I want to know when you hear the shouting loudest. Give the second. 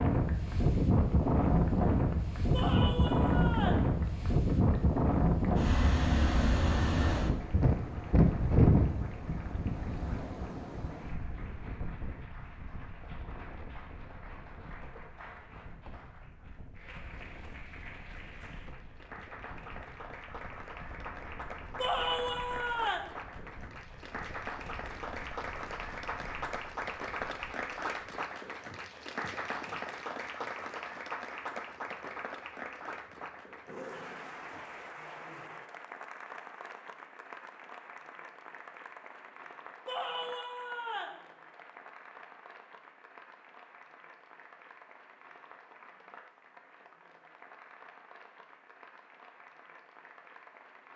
22 s.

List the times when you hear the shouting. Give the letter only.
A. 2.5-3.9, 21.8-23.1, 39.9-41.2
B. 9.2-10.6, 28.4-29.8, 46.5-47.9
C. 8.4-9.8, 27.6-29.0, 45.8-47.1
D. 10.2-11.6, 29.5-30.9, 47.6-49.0
A.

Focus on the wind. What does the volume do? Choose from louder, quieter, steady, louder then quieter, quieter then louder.
quieter.